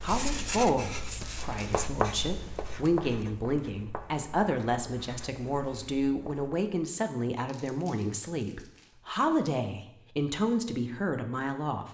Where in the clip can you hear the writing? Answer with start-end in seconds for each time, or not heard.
0.0-6.6.